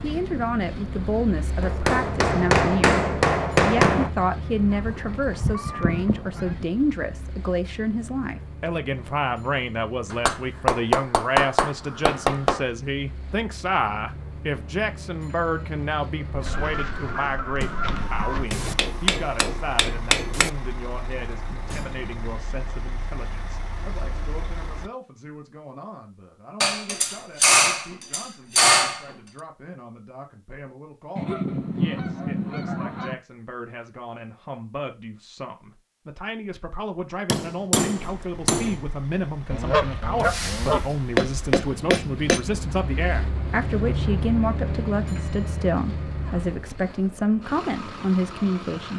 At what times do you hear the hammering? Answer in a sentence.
The hammering can be heard from 1.6 to 4.1 s, from 10.1 to 12.7 s, from 18.5 to 20.5 s, from 26.6 to 29.1 s, from 37.2 to 38.8 s and from 40.9 to 42.4 s.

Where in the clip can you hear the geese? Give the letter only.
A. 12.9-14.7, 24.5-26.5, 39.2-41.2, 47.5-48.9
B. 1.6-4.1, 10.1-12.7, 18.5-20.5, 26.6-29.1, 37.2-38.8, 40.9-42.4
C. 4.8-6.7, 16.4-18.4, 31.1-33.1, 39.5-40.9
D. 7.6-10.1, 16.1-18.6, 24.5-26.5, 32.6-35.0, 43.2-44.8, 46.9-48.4
C.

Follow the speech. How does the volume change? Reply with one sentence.
The volume of the speech goes down, then up.